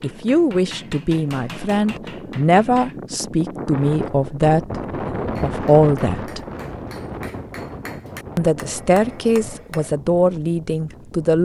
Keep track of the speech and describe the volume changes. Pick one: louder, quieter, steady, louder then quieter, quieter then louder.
steady.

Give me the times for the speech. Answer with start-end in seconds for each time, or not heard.
0.0-6.4, 8.3-11.4.